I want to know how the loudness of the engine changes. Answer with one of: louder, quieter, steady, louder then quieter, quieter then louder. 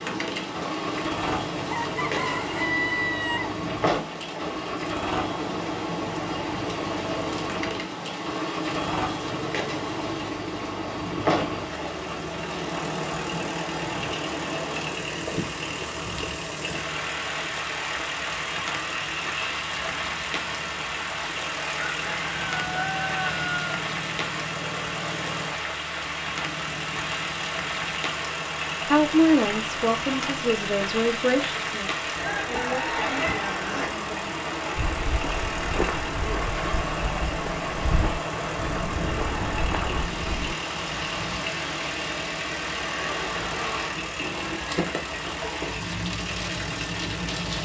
steady.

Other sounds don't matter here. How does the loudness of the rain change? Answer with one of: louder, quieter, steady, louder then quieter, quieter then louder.
steady.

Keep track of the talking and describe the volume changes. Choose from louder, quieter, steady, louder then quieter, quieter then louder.
quieter.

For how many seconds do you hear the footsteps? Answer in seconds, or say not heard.
6 s.